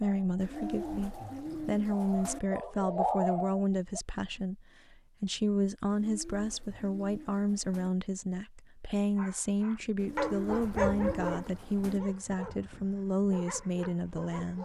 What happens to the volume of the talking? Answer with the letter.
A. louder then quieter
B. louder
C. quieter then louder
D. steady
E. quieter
D.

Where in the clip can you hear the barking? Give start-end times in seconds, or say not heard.
0.0-4.0, 9.2-14.6.